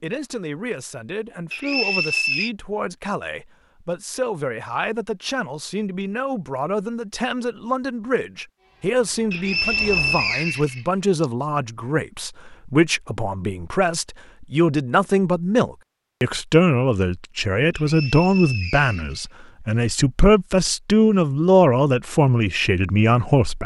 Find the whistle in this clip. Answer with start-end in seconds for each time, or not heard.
1.5-2.5, 9.3-11.2, 17.7-19.2.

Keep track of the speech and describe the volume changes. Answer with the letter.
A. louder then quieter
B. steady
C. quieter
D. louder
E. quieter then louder
D.